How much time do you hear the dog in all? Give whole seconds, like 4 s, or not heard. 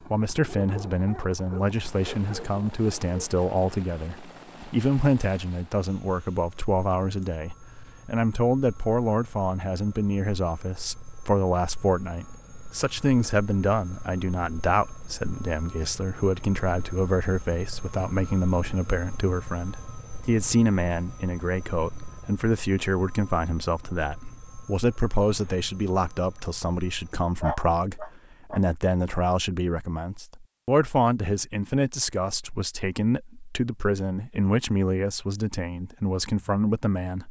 4 s.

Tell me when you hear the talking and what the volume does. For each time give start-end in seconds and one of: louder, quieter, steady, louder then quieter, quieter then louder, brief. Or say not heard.
0.1-37.2 steady.